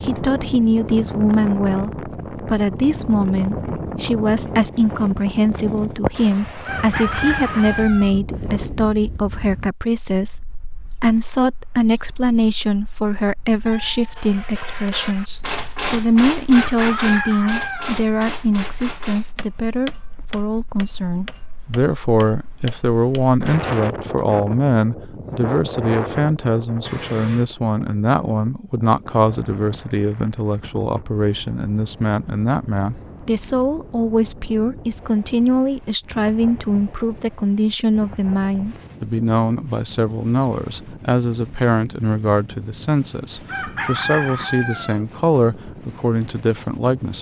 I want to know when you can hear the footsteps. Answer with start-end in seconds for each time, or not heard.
not heard.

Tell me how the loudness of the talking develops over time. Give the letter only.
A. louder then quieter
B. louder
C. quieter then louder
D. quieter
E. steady
E.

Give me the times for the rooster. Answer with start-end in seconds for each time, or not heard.
6.7-8.2, 16.5-18.0, 43.5-45.0.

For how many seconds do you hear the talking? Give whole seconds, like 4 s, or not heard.
47 s.